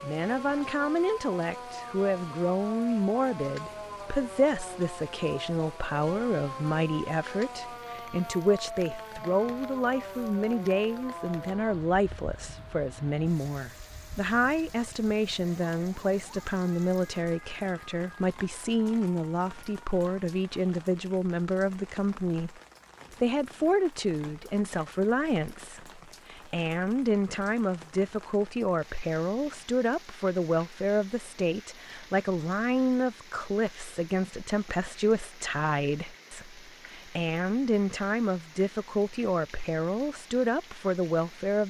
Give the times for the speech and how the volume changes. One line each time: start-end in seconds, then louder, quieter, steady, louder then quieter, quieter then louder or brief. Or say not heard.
0.0-22.6 steady
23.2-41.6 steady.